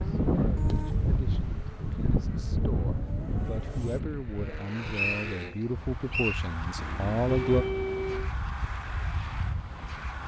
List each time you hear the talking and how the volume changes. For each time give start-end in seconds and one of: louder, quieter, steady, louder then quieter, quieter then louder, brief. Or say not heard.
0.0-7.7 louder.